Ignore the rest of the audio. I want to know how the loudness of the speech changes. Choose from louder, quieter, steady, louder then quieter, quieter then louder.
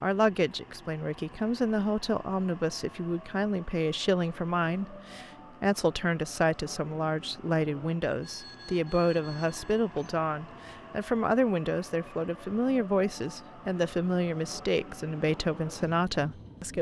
steady.